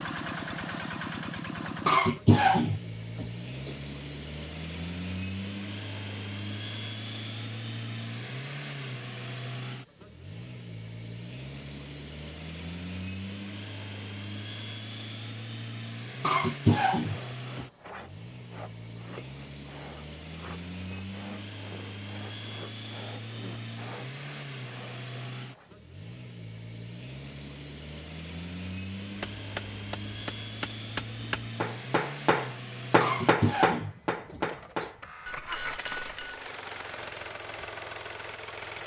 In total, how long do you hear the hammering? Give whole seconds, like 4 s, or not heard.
7 s.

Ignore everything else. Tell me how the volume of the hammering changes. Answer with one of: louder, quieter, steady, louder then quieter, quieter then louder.
louder then quieter.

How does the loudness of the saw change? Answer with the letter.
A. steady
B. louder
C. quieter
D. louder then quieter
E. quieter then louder
A.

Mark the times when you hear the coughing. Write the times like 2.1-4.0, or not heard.
1.9-3.7, 16.2-17.6, 33.0-34.9.